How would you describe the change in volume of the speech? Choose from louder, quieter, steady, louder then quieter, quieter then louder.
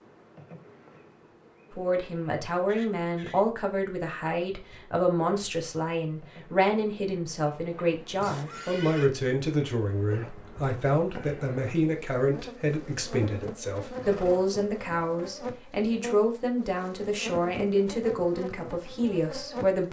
steady.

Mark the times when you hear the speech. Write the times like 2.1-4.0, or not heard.
1.7-19.8.